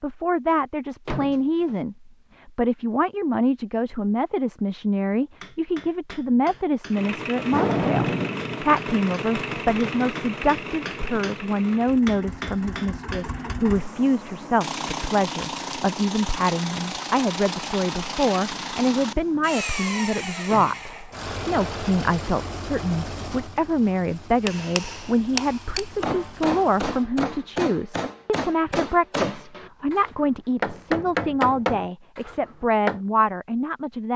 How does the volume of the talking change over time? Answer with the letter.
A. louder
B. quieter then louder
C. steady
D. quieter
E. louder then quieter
C.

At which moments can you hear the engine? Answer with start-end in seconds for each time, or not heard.
6.9-27.1.